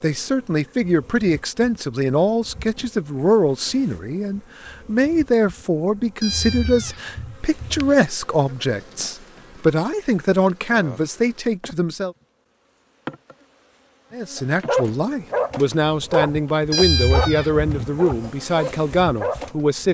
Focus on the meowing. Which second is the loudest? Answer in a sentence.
The loudest moment of the meowing is at 17 seconds.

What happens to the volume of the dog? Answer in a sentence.
The loudness of the dog goes down.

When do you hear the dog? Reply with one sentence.
You can hear the dog from 14.3 to 19.5 s.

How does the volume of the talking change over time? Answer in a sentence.
The volume of the talking stays about the same.